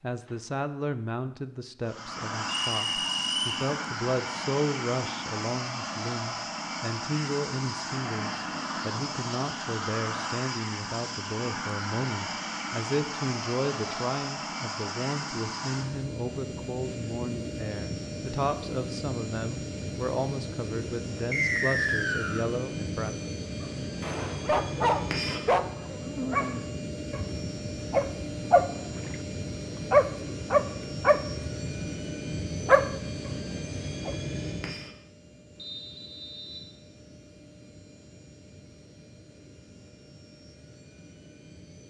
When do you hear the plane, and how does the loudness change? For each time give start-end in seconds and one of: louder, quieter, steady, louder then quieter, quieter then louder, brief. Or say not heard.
1.8-41.8 quieter.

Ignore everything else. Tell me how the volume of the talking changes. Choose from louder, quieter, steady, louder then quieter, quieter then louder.
steady.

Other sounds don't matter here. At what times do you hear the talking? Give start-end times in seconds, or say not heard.
0.0-23.1.